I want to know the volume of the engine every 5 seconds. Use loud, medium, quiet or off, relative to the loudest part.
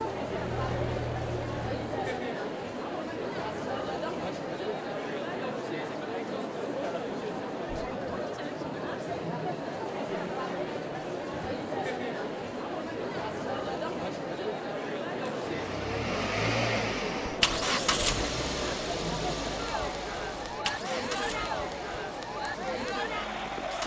medium, off, off, loud, medium.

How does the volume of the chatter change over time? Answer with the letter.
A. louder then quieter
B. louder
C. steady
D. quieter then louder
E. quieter
C.